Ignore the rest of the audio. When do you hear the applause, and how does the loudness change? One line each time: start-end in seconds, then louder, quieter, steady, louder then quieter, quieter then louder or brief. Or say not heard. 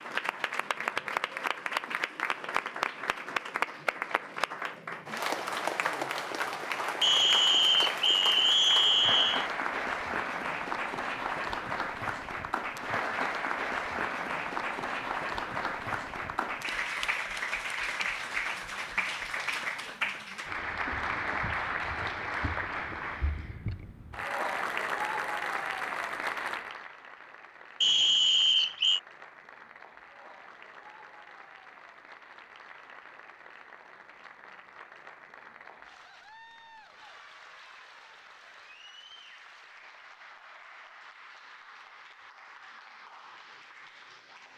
0.0-44.5 quieter.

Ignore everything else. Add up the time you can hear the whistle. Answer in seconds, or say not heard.
4 s.